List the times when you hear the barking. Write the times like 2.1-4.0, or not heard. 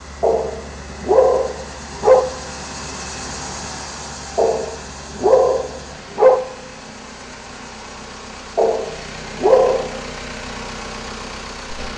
0.2-2.2, 4.3-6.4, 8.6-10.0.